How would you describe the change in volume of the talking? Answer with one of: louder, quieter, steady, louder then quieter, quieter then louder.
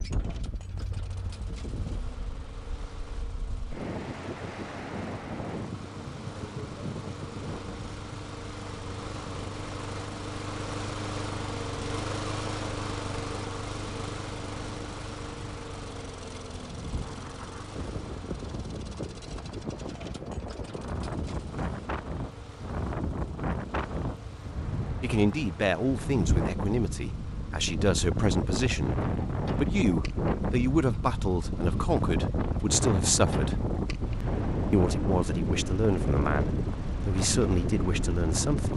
steady.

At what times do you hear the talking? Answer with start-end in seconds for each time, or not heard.
25.0-33.6, 34.7-38.7.